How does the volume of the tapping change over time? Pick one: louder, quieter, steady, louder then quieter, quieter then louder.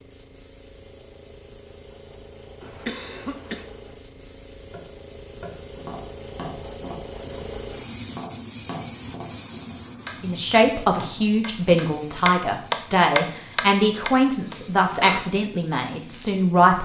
louder.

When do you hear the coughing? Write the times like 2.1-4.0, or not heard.
2.6-3.6, 13.9-15.3.